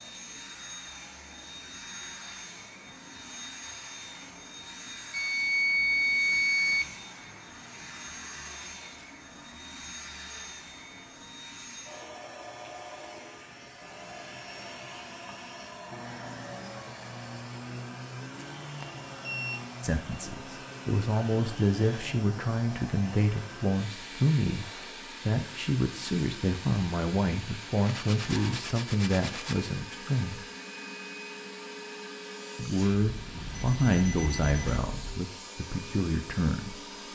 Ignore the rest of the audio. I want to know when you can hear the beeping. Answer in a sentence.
The beeping can be heard from 5.1 to 6.9 s, from 18.6 to 19.6 s and from 33.0 to 35.2 s.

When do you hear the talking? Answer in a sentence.
You can hear the talking from 19.8 to 30.4 s and from 32.5 to 37.1 s.